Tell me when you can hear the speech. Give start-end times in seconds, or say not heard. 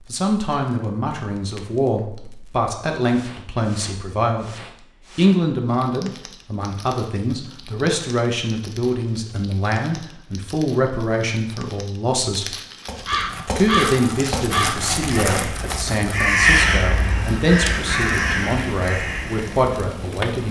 0.1-4.5, 5.2-12.6, 13.6-20.4.